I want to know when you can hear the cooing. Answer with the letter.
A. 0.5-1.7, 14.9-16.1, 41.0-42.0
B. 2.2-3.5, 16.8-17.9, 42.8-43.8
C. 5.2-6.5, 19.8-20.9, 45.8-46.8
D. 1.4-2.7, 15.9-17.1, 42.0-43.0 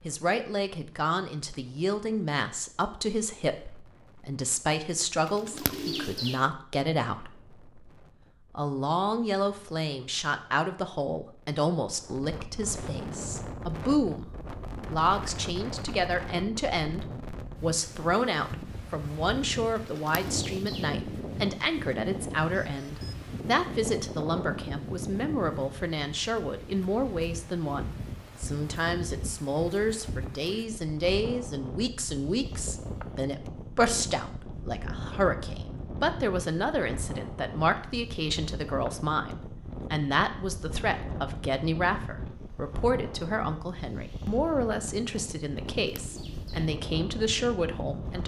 C.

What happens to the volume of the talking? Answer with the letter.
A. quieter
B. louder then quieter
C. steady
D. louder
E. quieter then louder
C.